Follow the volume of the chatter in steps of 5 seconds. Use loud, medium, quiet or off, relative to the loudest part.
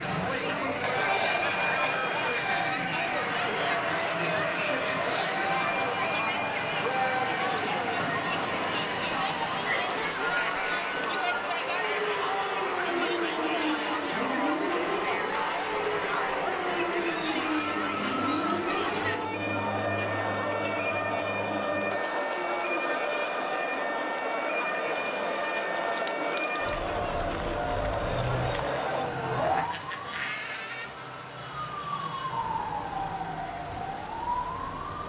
loud, loud, loud, loud, loud, loud, off.